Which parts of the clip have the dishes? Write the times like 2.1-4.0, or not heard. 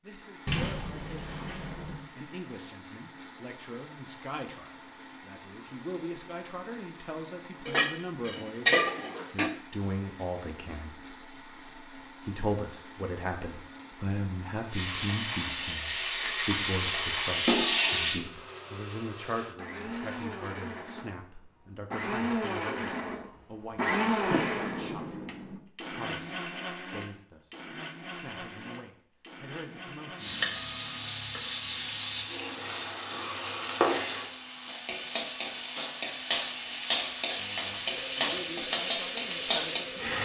7.7-9.6.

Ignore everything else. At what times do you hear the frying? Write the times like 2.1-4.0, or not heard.
14.7-18.2, 30.1-40.2.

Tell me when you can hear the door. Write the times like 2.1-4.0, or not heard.
0.5-1.9, 24.3-25.6.